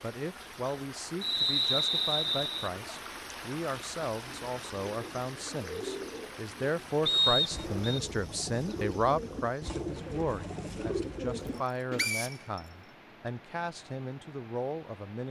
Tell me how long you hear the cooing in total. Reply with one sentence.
You can hear the cooing for 8 seconds altogether.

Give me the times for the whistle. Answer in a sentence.
The whistle can be heard from 1.2 to 2.7 s, from 7.0 to 8.0 s and from 11.9 to 12.6 s.